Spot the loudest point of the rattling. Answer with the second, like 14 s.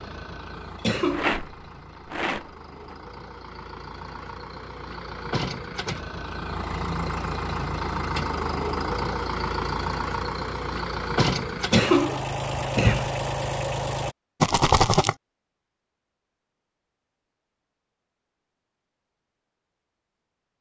15 s.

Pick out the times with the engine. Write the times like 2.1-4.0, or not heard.
0.0-14.2.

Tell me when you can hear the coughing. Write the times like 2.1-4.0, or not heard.
0.6-1.4, 11.5-13.1.